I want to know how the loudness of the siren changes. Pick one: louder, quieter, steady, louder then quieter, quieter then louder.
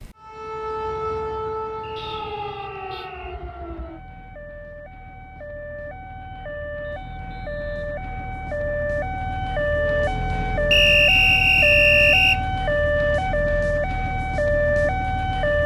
quieter then louder.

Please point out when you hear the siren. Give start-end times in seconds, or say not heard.
0.0-15.6.